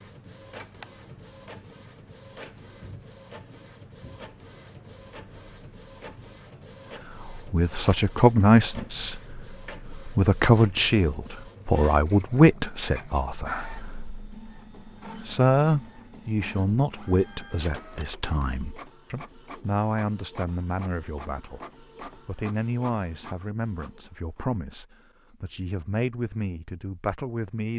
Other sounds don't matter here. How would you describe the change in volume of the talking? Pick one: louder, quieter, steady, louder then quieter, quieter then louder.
quieter.